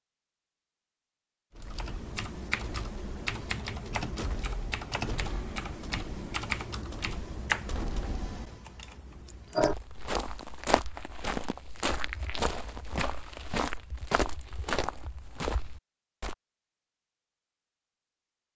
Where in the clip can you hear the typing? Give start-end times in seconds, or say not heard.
1.6-9.8.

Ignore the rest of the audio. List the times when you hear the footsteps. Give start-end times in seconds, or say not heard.
9.6-16.4.